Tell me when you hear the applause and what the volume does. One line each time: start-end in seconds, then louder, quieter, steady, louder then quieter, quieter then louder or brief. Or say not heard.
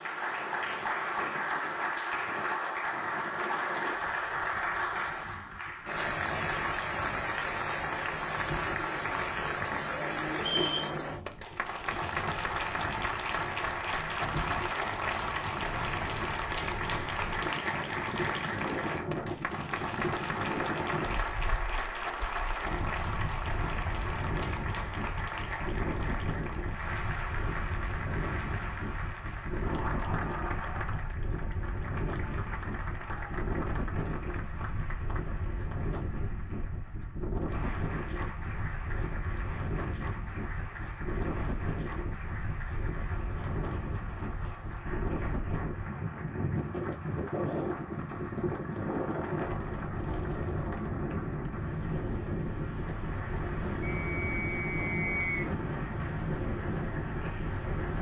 0.0-57.9 quieter.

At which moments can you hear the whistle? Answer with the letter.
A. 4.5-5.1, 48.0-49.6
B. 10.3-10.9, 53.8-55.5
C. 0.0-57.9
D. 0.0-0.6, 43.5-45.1
B.